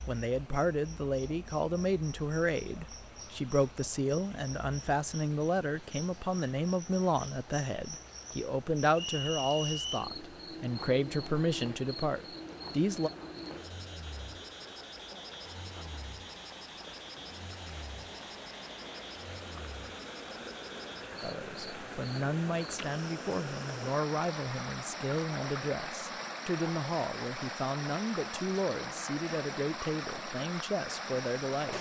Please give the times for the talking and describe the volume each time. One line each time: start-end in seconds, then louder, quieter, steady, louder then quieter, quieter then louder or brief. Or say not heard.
0.1-13.1 steady
21.2-31.7 steady.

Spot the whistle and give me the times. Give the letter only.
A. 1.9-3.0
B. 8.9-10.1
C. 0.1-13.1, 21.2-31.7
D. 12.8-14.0
B.